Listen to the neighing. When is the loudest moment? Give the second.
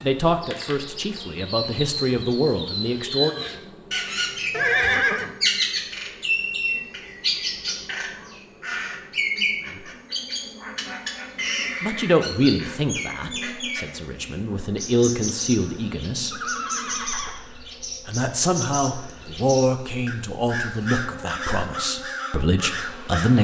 5 s.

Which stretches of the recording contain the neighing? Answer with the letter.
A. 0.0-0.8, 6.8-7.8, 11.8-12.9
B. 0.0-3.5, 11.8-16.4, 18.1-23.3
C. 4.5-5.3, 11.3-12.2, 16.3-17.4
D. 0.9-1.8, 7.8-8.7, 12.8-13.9
C.